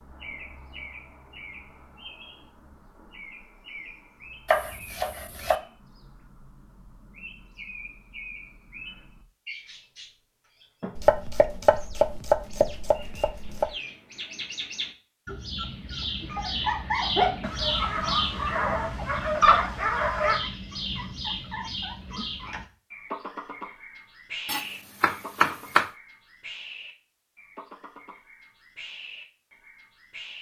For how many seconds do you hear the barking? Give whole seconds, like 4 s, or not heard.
3 s.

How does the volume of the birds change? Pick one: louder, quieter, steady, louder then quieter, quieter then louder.
louder then quieter.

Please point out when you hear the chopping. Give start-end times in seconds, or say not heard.
4.5-5.6, 10.9-13.7, 24.4-25.9.